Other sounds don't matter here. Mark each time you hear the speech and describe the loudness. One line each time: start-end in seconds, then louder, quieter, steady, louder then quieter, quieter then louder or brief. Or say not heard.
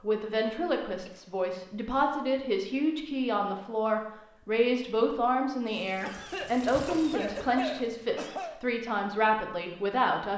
0.0-10.3 steady.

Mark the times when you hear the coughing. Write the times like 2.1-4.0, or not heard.
0.3-1.4, 6.0-8.6.